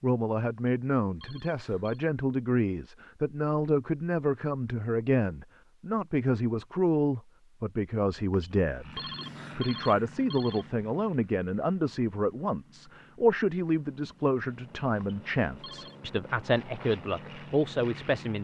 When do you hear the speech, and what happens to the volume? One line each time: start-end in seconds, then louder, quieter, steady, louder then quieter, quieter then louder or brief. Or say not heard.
0.0-18.3 steady.